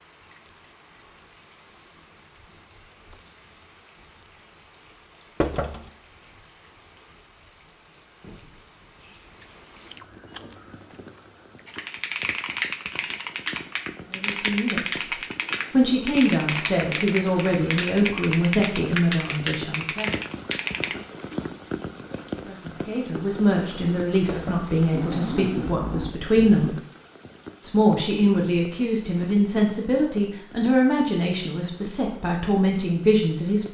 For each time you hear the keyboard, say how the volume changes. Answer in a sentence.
You can hear the keyboard from 11.7 to 20.9 s, at a steady volume.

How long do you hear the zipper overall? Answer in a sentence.
The zipper can be heard for 2 seconds in total.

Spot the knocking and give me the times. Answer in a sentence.
The knocking can be heard from 5.4 to 5.9 s and from 24.2 to 24.7 s.